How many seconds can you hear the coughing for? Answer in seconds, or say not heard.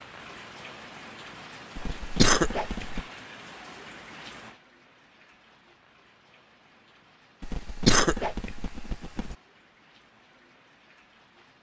3 s.